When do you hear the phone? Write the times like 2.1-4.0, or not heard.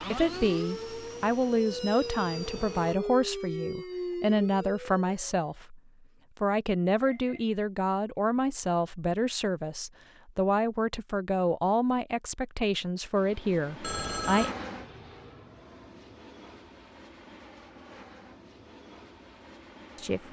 7.0-7.6, 13.8-14.6.